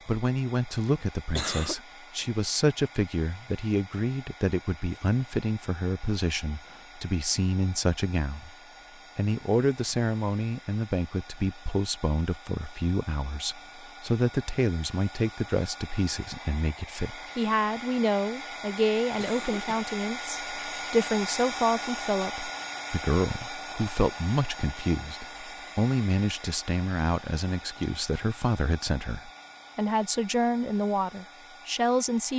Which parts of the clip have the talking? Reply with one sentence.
The talking can be heard from 0.1 to 8.5 s and from 9.2 to 32.3 s.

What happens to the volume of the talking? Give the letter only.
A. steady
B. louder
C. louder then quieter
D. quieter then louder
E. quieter
A.